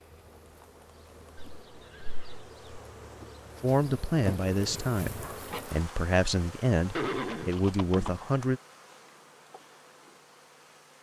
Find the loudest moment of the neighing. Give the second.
7 s.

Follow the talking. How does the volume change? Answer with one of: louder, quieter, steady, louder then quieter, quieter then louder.
steady.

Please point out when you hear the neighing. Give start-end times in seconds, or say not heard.
1.6-2.8, 7.0-8.2.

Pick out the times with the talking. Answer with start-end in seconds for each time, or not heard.
3.6-8.6.